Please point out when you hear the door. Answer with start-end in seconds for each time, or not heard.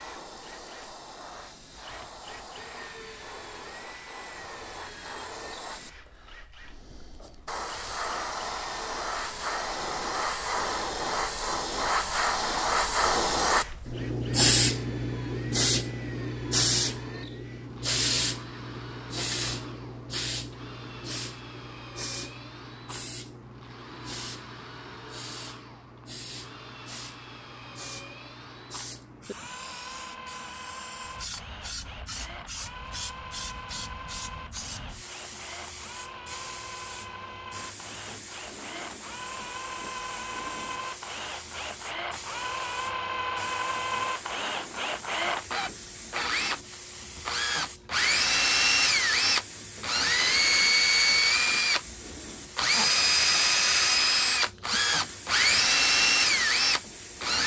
not heard.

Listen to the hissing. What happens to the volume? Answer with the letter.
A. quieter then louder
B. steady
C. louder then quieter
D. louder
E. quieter
C.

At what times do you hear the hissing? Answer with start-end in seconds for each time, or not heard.
0.0-57.4.